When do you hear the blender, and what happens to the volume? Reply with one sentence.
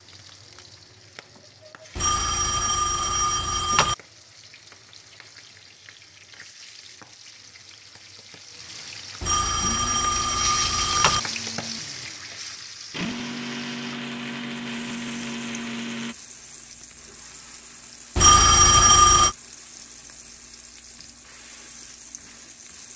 The blender can be heard from 9.6 to 16.1 s, getting louder.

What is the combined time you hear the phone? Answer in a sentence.
The phone can be heard for 5 seconds in total.